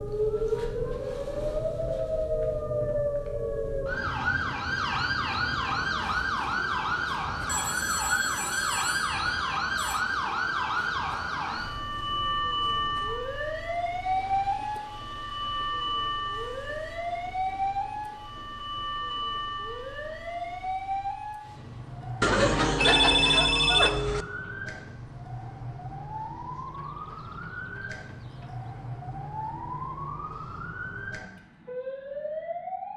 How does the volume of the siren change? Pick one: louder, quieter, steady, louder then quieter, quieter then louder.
quieter.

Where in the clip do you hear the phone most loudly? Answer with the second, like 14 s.
23 s.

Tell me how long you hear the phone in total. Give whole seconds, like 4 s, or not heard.
5 s.